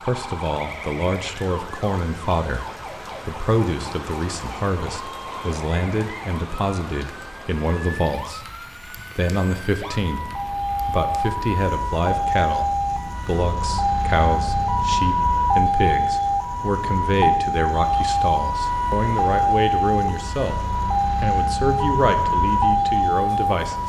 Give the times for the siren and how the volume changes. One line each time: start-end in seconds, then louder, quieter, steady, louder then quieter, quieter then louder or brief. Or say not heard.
0.0-23.8 louder.